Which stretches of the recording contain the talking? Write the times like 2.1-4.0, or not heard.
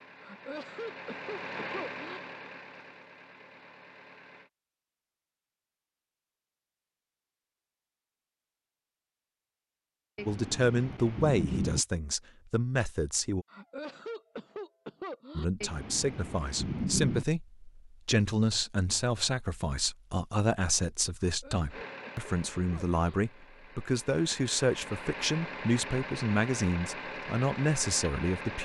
10.2-13.4, 15.3-28.6.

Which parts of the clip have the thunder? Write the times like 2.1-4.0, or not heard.
10.2-11.8, 15.6-17.2.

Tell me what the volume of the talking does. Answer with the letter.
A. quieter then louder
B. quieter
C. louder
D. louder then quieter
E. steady
E.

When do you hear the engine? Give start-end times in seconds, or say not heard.
0.0-4.5, 21.7-28.6.